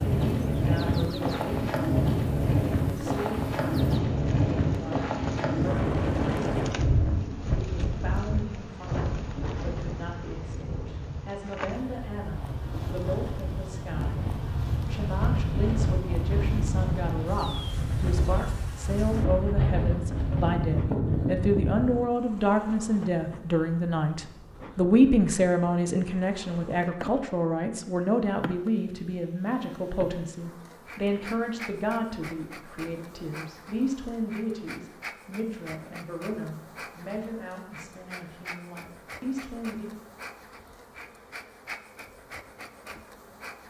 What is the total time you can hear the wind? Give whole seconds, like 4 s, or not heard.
22 s.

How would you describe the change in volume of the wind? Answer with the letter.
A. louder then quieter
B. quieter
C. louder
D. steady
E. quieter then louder
E.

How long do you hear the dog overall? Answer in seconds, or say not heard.
not heard.